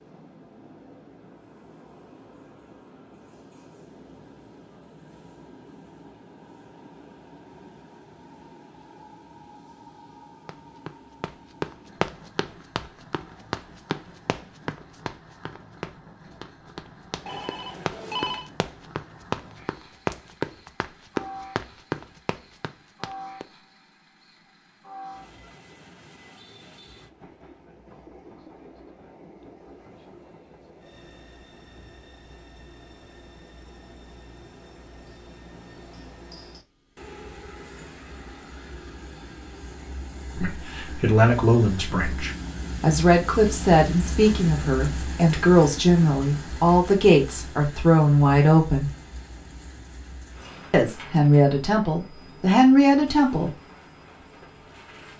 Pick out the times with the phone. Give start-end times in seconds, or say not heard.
17.2-18.5.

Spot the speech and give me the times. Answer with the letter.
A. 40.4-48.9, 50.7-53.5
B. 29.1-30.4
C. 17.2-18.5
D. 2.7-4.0
A.